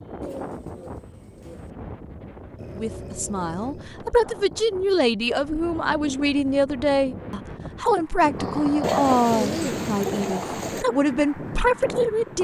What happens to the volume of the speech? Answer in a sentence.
The loudness of the speech stays about the same.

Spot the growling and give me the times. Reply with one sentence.
The growling can be heard from 2.5 to 4.1 s and from 8.3 to 9.7 s.